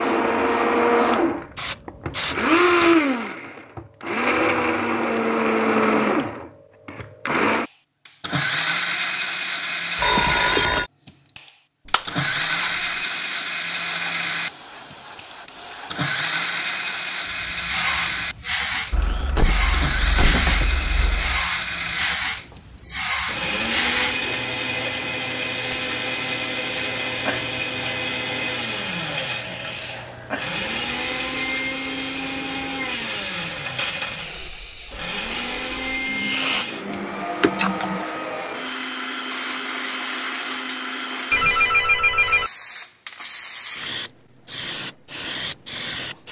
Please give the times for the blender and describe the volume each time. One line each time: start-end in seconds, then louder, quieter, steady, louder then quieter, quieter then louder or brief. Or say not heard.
0.0-41.7 quieter.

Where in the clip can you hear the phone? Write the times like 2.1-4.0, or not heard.
9.9-10.9, 18.9-21.4, 41.3-42.5.